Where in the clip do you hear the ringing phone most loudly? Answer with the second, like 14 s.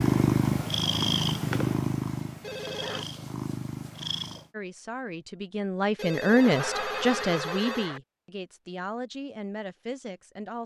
7 s.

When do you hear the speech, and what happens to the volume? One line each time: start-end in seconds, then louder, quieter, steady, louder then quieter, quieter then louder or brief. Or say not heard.
4.5-10.6 louder then quieter.